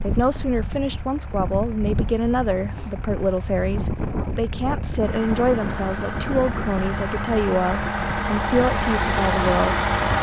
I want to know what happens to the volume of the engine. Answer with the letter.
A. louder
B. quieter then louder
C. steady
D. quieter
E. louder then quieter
A.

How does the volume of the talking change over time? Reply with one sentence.
The loudness of the talking stays about the same.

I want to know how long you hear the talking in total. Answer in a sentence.
You can hear the talking for 10 seconds altogether.